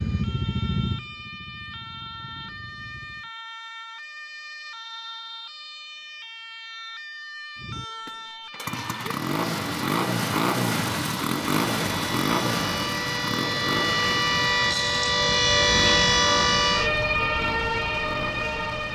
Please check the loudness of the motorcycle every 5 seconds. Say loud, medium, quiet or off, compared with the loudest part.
medium, loud, loud, medium.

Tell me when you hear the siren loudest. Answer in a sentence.
The volume of the siren peaks at 16 seconds.